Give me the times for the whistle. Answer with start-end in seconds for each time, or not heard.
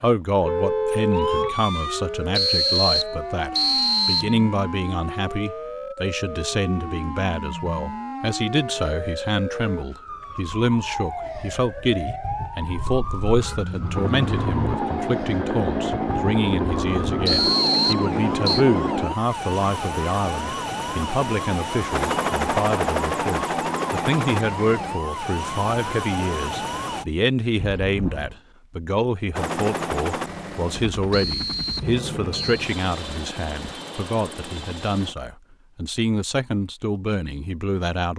2.3-4.3, 17.2-18.6, 31.1-32.6.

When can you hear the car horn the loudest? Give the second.
1 s.